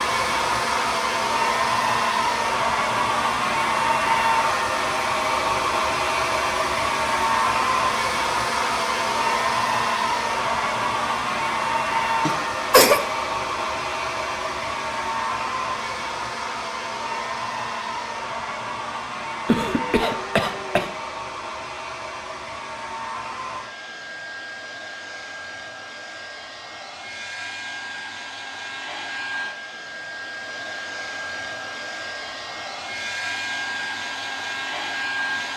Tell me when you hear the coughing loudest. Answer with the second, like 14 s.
13 s.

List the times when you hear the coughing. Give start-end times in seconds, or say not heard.
12.2-13.0, 19.4-20.9.